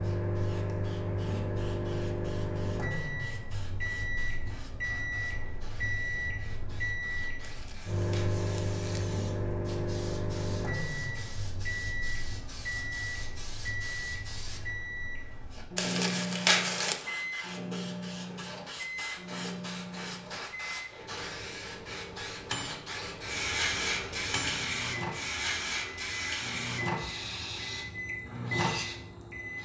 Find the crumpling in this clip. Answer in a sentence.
The crumpling can be heard from 7.4 to 9.1 s and from 15.8 to 17.1 s.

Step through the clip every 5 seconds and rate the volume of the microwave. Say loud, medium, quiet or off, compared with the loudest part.
loud, loud, loud, loud, medium, loud.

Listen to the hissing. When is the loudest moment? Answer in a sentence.
The volume of the hissing peaks at 24 seconds.